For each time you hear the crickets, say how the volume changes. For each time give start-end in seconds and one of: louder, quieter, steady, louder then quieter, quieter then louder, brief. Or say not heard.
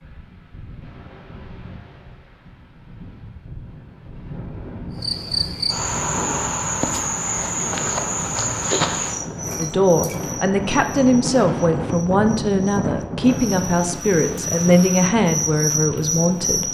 5.0-16.6 quieter then louder.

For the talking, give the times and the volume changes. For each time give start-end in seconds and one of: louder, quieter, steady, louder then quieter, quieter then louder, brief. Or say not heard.
9.4-16.6 steady.